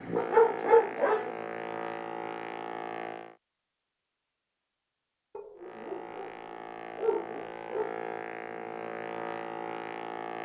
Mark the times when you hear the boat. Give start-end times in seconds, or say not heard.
0.0-3.4, 5.5-10.4.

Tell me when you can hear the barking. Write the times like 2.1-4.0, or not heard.
0.1-1.3, 5.3-6.3, 7.0-7.9.